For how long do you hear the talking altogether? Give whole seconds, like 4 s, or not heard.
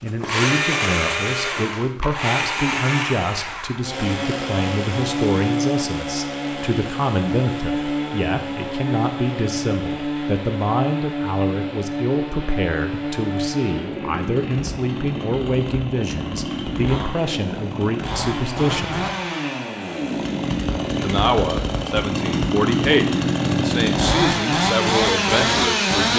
24 s.